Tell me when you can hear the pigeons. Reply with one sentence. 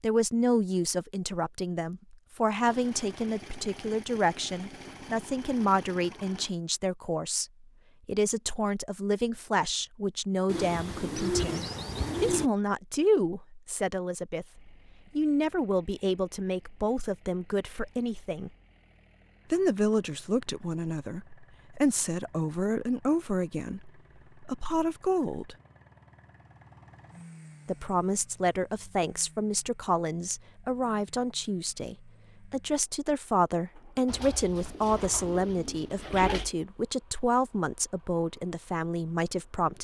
You can hear the pigeons from 10.4 to 12.5 s and from 34.0 to 36.5 s.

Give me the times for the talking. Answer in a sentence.
The talking can be heard from 0.0 to 18.5 s, from 19.5 to 25.6 s and from 27.6 to 39.7 s.